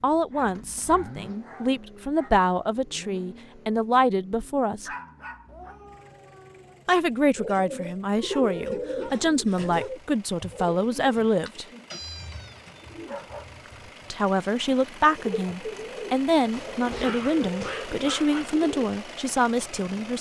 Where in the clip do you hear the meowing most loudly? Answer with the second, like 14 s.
12 s.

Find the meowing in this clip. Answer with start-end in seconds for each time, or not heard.
5.5-6.8, 11.9-13.9.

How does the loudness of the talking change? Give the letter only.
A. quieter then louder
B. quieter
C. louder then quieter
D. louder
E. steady
E.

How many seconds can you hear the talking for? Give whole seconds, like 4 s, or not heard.
16 s.